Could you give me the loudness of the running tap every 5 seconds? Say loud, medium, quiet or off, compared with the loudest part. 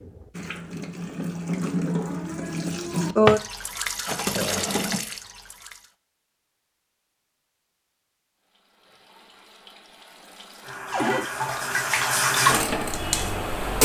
loud, quiet, loud.